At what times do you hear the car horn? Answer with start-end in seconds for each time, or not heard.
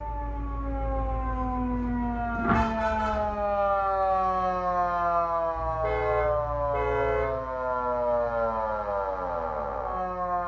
2.4-3.4, 5.5-7.5.